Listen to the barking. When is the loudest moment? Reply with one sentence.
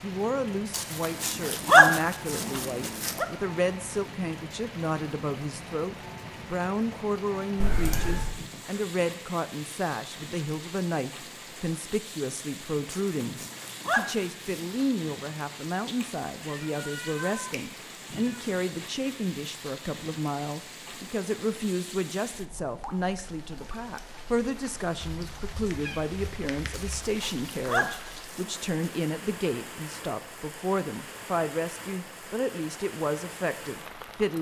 The loudest moment of the barking is at 2 seconds.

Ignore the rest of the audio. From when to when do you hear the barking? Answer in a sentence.
You can hear the barking from 0.7 to 3.2 s, from 12.9 to 14.7 s and from 26.7 to 28.6 s.